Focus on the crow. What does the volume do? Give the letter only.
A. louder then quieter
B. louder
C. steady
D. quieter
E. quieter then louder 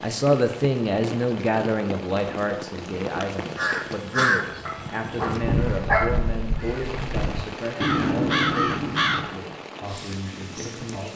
E.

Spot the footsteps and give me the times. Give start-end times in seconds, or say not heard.
not heard.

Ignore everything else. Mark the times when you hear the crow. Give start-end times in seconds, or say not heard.
3.4-9.4.